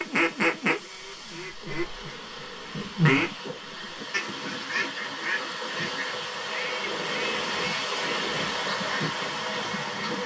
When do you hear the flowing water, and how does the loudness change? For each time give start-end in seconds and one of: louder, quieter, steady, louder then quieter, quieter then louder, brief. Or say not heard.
0.0-10.2 louder.